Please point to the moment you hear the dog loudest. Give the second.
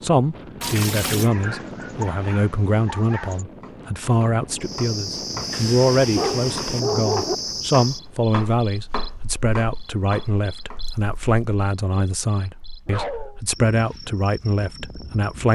7 s.